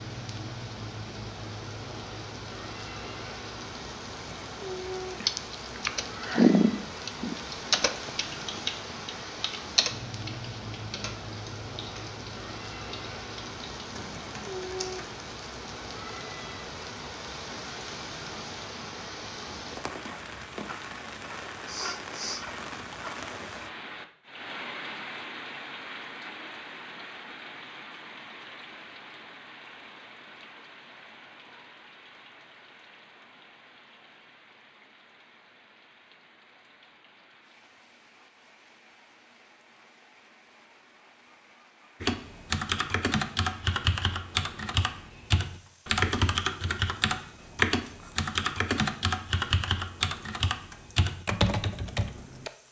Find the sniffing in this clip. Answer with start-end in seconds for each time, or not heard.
21.6-22.4.